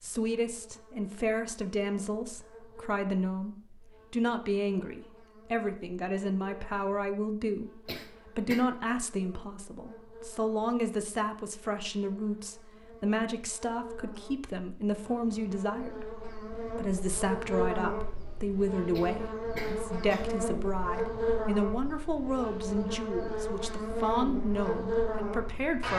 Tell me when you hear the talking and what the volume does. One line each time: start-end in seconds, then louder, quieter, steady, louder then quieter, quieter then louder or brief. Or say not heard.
0.0-25.9 steady.